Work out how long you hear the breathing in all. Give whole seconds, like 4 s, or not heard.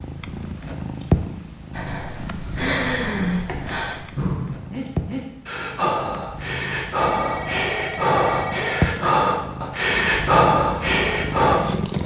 10 s.